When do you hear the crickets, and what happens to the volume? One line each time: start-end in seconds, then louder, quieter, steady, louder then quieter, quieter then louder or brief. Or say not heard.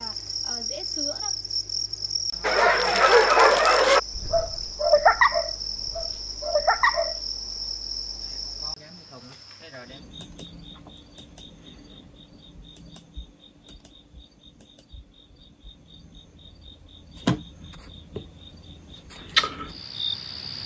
0.0-20.6 quieter then louder.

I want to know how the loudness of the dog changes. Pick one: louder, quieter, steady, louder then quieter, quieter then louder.
quieter.